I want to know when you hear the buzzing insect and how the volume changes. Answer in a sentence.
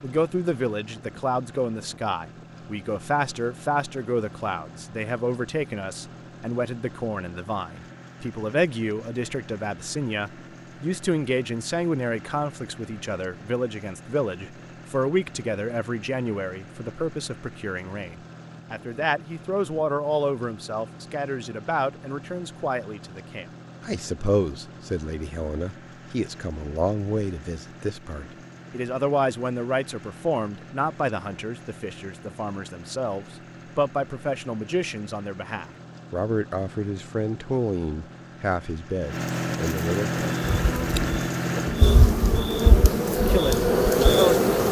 The buzzing insect can be heard from 40.2 to 44.6 s, getting louder.